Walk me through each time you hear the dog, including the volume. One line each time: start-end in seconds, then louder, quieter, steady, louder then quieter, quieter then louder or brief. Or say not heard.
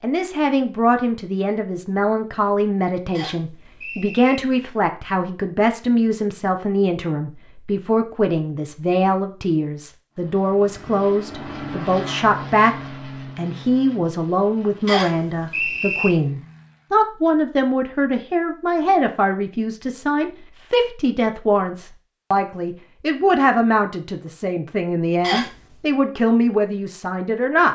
not heard.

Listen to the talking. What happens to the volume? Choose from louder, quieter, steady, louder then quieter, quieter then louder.
steady.